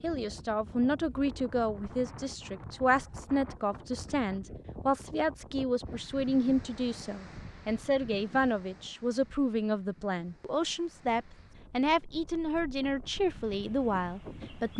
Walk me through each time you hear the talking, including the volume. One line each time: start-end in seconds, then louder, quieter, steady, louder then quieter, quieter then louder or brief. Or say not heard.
0.0-14.7 steady.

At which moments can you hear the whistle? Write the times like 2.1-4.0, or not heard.
not heard.